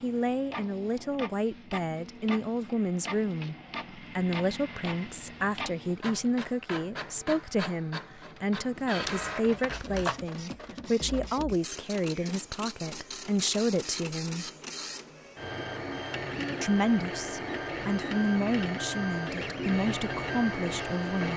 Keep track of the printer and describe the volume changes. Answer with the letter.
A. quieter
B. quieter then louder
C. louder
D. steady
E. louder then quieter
C.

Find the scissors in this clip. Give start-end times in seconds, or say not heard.
9.0-10.2.